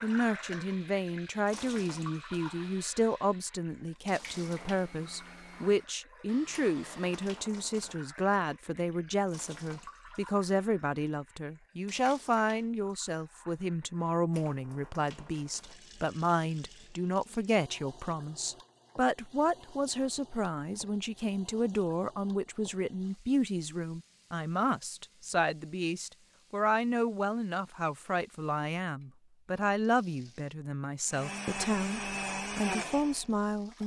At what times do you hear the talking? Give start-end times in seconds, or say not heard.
0.0-33.8.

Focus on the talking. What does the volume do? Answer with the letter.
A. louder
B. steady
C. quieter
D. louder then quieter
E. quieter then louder
B.